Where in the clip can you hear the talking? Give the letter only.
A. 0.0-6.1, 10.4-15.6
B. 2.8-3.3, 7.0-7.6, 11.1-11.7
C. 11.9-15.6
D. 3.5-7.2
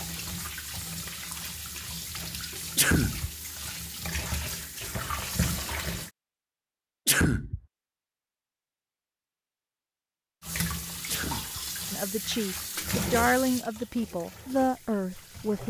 C.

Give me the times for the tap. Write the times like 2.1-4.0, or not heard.
0.0-6.1, 10.4-15.6.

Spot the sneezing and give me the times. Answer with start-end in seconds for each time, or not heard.
2.8-3.3, 7.0-7.6, 11.1-11.7.